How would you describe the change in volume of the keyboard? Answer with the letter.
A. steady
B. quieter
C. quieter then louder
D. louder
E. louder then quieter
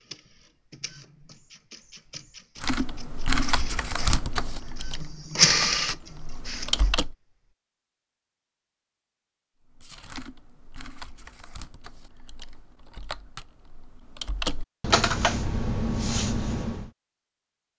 C.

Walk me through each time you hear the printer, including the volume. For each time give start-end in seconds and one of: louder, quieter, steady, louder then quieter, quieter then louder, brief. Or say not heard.
0.0-7.1 louder.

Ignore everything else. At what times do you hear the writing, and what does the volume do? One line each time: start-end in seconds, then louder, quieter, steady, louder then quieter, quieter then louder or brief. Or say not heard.
not heard.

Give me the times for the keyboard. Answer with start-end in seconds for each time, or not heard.
2.6-7.2, 9.6-16.9.